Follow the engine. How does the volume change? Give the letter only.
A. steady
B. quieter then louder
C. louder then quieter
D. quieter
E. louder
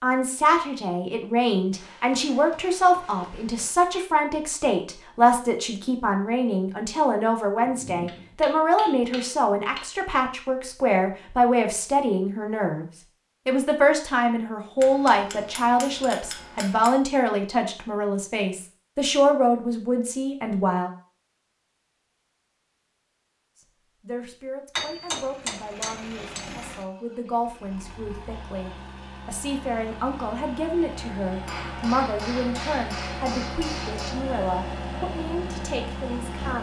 E.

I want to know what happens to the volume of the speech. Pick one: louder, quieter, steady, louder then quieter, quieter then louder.
quieter.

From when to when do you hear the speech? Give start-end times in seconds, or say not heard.
0.0-12.8, 13.4-20.9, 23.6-36.5.